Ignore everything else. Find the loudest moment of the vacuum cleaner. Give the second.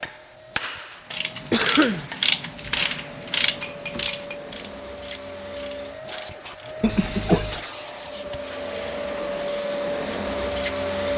11 s.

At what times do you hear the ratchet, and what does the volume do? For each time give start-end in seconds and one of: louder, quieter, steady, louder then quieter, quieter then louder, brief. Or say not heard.
1.1-6.8 quieter.